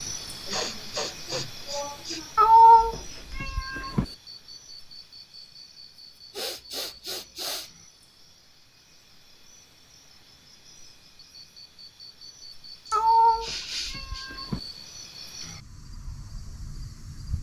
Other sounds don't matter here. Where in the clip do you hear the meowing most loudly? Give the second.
3 s.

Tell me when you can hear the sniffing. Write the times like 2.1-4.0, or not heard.
0.5-2.3, 6.3-7.7, 12.8-14.3.